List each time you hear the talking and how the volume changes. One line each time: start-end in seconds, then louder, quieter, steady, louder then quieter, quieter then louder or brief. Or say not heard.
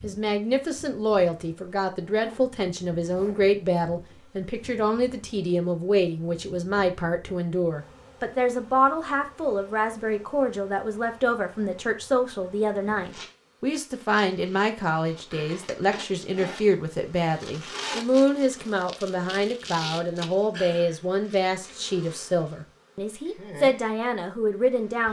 0.0-25.0 steady.